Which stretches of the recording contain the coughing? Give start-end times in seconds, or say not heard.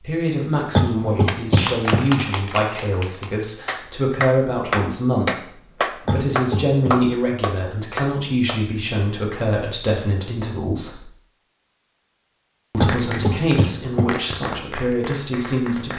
0.7-2.1, 6.0-7.0, 12.8-14.2.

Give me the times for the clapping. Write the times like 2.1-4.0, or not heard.
1.2-8.6, 12.8-15.9.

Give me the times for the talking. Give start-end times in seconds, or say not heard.
0.0-11.1, 12.7-15.9.